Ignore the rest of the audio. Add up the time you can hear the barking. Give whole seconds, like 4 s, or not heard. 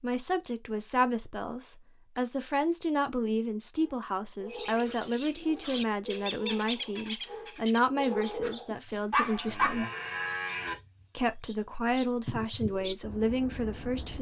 6 s.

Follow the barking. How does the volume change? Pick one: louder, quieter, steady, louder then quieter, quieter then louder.
louder.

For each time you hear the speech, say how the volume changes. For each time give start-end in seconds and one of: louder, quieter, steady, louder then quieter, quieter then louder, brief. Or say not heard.
0.0-9.8 steady
11.2-14.1 brief.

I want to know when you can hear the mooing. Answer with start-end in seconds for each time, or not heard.
9.4-10.8.